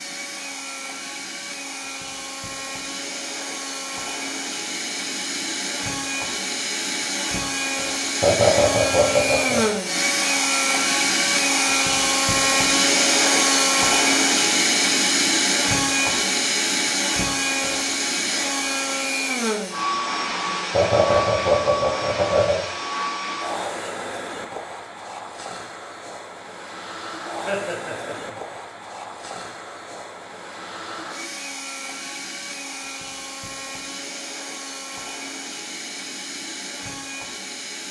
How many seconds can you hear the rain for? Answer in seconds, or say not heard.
not heard.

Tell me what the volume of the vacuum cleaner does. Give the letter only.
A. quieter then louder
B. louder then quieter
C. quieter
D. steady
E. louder
B.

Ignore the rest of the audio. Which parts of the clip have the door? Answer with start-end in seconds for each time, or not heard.
not heard.